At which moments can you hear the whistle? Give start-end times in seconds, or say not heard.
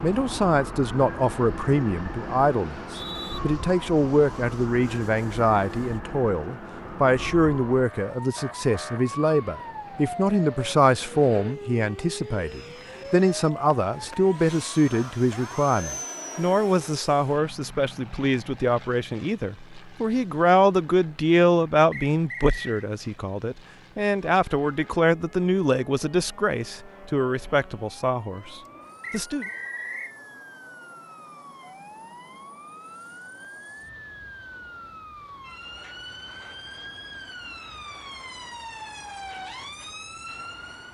2.8-3.4, 21.9-22.9, 29.0-30.1.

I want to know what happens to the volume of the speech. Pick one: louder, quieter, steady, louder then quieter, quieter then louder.
steady.